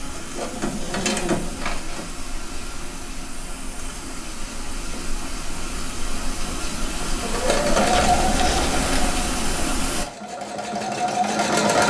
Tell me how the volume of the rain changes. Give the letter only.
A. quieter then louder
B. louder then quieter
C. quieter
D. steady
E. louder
E.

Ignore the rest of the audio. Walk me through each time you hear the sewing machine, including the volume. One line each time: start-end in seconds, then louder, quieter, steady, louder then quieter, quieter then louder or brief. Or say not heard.
0.0-2.2 brief
7.2-11.8 quieter then louder.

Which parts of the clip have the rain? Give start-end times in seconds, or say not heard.
0.0-10.1.